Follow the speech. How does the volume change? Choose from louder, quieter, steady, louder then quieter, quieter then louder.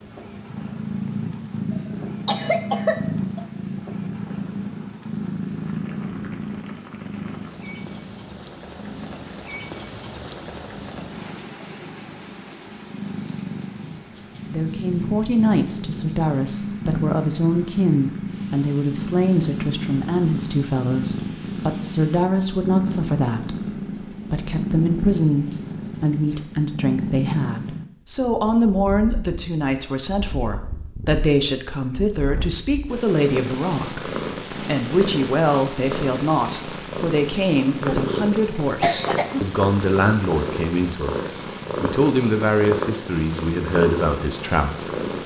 steady.